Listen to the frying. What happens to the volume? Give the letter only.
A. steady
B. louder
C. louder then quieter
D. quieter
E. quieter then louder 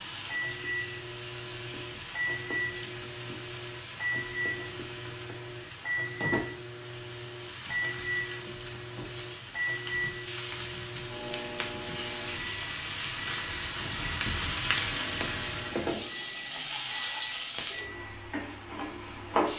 B.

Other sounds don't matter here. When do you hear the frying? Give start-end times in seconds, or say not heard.
0.0-19.5.